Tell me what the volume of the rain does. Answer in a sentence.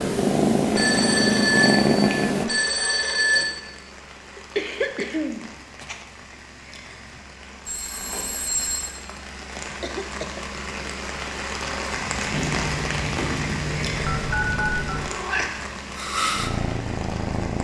The loudness of the rain goes up, then down.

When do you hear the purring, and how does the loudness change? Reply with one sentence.
The purring can be heard briefly from 0.0 to 2.5 s; and from 12.1 to 17.6 s, getting louder.